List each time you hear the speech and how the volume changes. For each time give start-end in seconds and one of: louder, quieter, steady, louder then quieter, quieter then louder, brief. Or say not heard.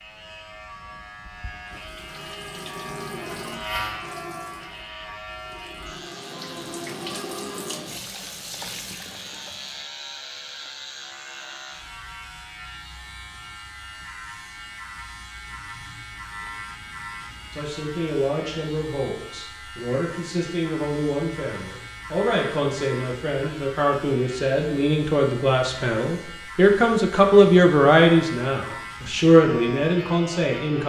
17.5-30.8 louder.